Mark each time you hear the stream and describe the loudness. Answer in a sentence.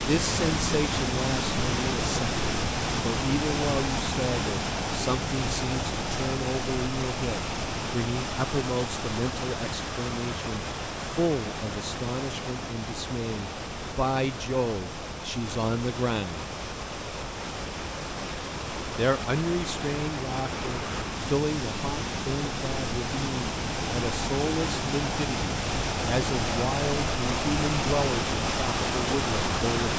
The stream can be heard from 0.0 to 29.9 s, getting quieter then louder.